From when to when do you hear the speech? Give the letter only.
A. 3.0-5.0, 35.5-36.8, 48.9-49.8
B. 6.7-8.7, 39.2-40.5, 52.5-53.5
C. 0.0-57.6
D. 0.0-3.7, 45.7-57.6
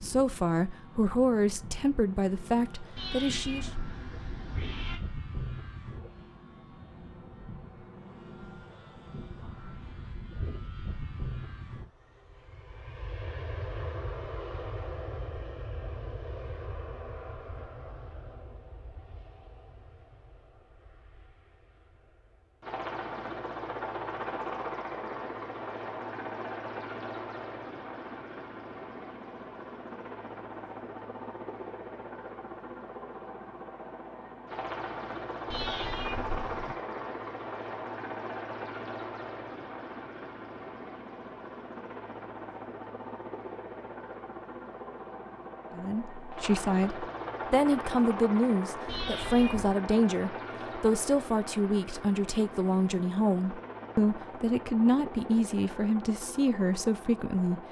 D.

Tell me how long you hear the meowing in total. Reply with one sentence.
The meowing can be heard for 4 seconds in total.